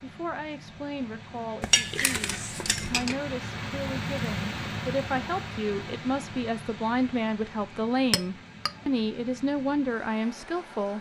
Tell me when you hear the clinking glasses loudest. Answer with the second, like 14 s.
2 s.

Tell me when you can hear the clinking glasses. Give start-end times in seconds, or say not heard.
1.6-3.1, 8.1-8.7.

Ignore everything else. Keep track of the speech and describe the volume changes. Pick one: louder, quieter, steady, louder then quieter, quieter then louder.
louder.